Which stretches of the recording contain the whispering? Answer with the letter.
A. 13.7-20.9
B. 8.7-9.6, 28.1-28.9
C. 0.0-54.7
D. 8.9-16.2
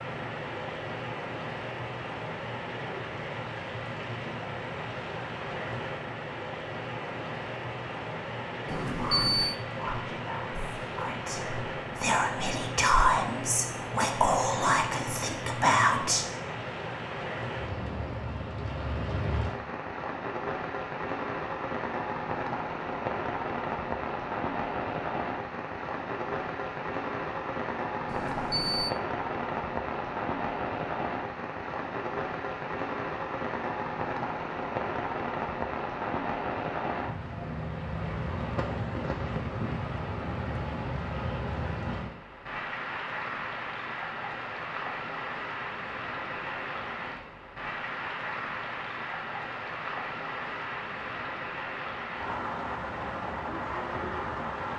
D.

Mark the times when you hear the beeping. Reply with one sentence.
The beeping can be heard from 8.7 to 9.6 s and from 28.1 to 28.9 s.